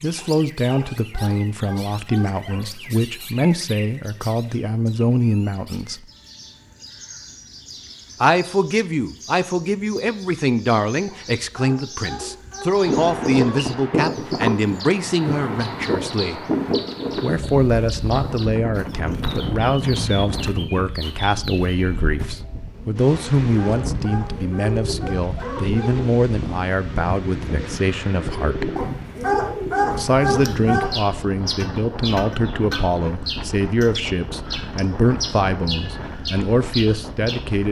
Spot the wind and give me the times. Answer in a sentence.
You can hear the wind from 12.8 to 37.6 s.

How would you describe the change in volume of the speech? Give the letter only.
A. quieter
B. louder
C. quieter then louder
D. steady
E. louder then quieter
D.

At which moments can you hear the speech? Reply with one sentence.
The speech can be heard from 0.0 to 6.0 s, from 8.2 to 16.4 s, from 17.1 to 28.8 s and from 29.9 to 37.6 s.